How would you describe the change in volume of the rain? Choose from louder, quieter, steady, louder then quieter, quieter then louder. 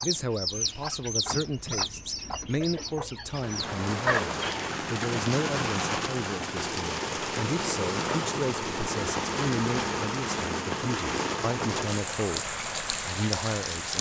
steady.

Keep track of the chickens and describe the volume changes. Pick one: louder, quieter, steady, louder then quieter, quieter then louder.
quieter then louder.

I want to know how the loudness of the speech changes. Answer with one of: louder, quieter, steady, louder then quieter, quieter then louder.
steady.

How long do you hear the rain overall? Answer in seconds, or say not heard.
11 s.